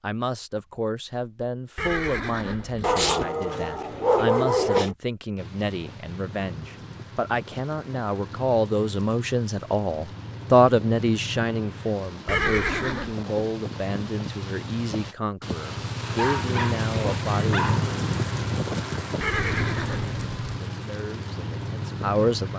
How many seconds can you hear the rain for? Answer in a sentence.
The rain can be heard for 17 seconds in total.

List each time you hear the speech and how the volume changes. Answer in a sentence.
You can hear the speech from 0.0 to 17.6 s, getting louder then quieter; and briefly from 20.6 to 22.5 s.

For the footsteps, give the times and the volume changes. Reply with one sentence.
The footsteps can't be heard in this clip.